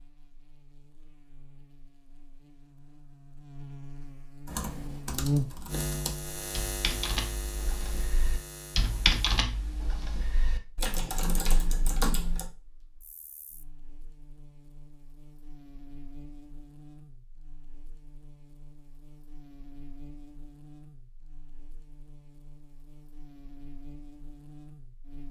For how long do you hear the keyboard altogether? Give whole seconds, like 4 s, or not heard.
8 s.